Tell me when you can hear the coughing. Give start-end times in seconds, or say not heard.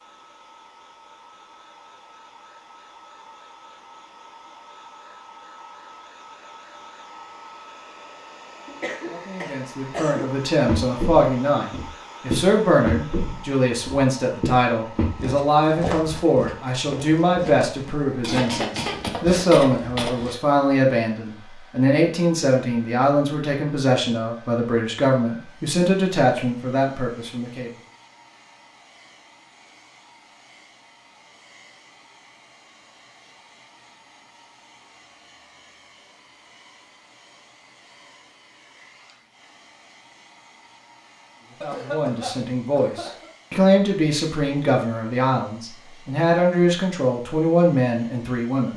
8.7-10.3, 18.2-20.4, 41.6-43.3.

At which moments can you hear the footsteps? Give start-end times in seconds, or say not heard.
10.7-20.4.